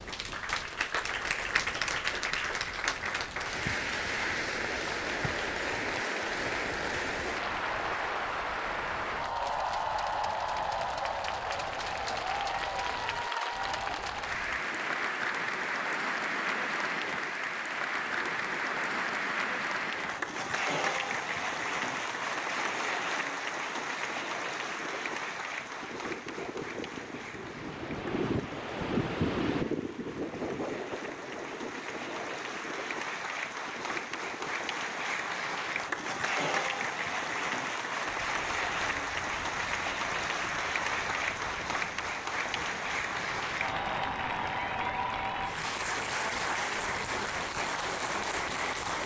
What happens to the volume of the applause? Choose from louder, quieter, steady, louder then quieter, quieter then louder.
steady.